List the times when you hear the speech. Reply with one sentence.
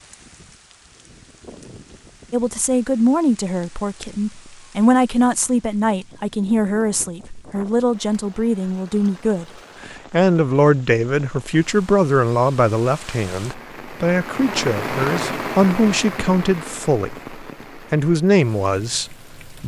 The speech can be heard from 2.3 to 19.6 s.